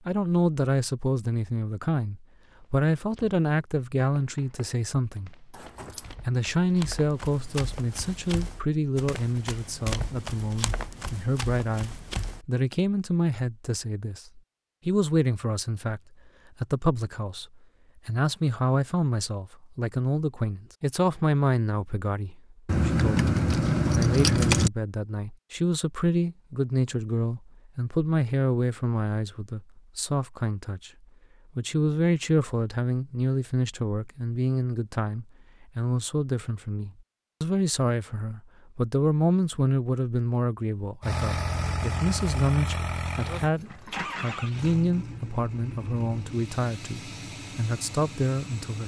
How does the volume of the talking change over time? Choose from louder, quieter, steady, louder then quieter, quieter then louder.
steady.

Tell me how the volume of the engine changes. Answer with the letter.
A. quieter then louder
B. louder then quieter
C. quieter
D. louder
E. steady
C.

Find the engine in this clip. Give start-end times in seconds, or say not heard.
41.0-48.8.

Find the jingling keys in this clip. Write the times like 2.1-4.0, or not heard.
5.5-6.2, 22.6-24.7, 43.5-44.4.